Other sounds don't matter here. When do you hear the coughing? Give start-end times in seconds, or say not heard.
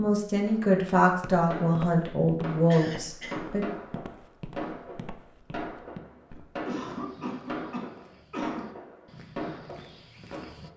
2.7-3.4, 6.3-8.7.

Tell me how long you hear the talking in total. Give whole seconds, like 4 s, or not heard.
4 s.